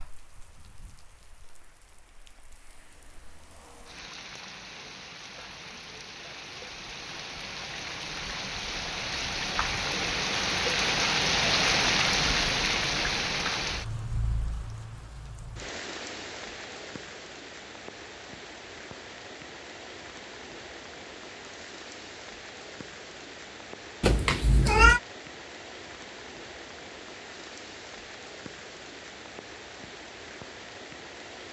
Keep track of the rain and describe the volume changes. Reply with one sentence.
The loudness of the rain goes up, then down.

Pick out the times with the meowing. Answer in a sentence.
You can hear the meowing from 24.0 to 25.0 s.